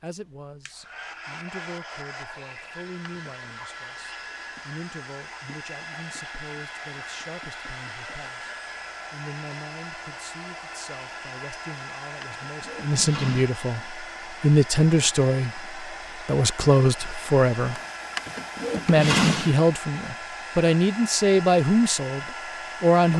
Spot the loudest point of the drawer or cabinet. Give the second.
19 s.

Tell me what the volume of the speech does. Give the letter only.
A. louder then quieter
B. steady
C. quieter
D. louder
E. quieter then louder
D.